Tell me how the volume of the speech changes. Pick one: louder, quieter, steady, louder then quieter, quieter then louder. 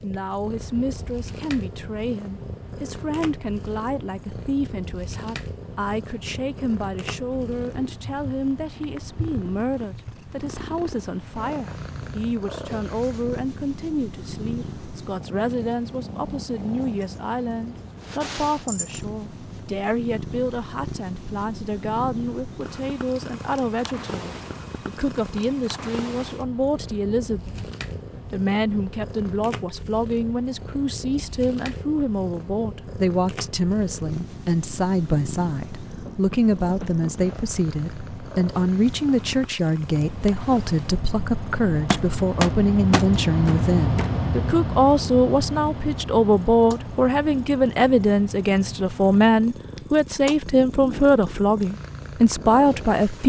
louder.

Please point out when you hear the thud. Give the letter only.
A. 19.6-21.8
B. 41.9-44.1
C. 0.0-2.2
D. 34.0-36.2
B.